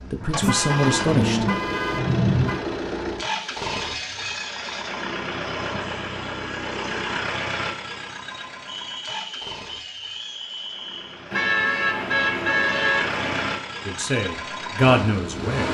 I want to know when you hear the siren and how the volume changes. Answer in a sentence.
You can't hear the siren here.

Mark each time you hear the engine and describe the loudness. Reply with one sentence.
You can hear the engine from 0.0 to 15.6 s, getting quieter then louder.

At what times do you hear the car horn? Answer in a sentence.
The car horn can be heard from 0.4 to 2.6 s and from 11.3 to 13.6 s.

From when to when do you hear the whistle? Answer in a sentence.
The whistle can be heard from 8.7 to 11.2 s.